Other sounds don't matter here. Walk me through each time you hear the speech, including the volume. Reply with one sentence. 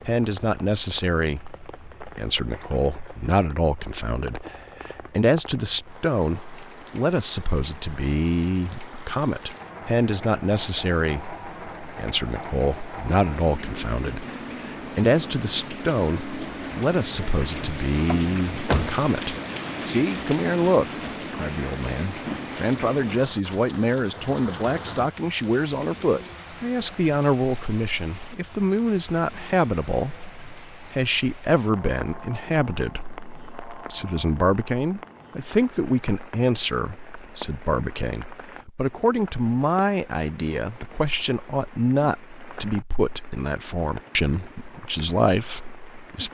The speech can be heard from 0.1 to 46.3 s, at a steady volume.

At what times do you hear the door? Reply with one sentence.
The door can be heard from 18.1 to 19.4 s.